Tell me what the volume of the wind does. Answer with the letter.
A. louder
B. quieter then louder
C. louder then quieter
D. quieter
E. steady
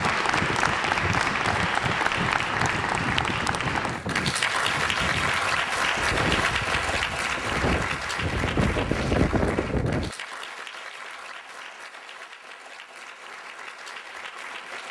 A.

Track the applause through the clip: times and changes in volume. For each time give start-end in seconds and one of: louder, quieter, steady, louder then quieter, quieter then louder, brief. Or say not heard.
0.0-14.8 quieter.